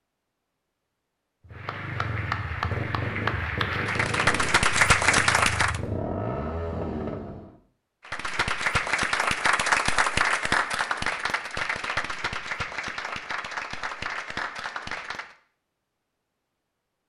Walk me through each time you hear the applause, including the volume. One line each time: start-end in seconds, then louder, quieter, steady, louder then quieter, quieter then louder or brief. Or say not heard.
1.5-5.8 louder
8.1-15.3 quieter.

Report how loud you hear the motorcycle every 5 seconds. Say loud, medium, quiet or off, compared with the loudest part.
loud, loud, off, off.